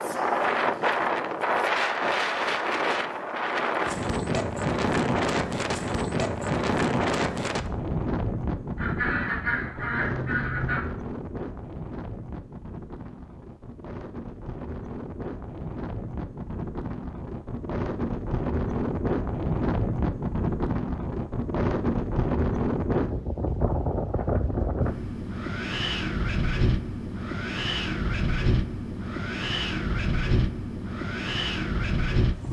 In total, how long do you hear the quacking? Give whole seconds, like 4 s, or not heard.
2 s.